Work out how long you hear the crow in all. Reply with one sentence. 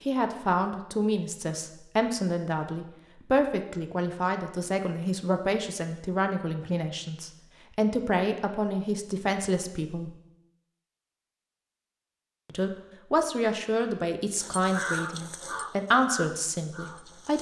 You can hear the crow for 3 seconds altogether.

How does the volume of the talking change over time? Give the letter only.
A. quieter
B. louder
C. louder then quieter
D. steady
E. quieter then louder
D.